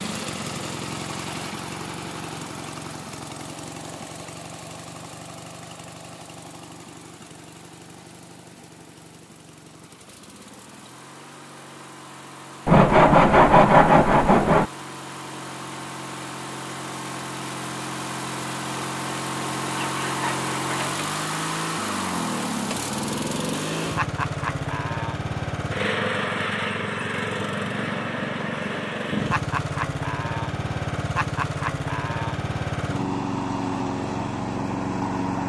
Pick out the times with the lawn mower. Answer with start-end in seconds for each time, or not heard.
0.0-35.4.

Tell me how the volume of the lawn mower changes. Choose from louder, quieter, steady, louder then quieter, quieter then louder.
quieter then louder.